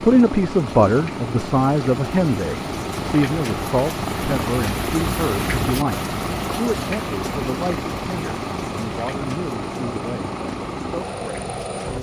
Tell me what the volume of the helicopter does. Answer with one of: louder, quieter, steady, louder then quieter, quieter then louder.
steady.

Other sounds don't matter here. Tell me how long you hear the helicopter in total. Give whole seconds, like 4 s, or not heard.
12 s.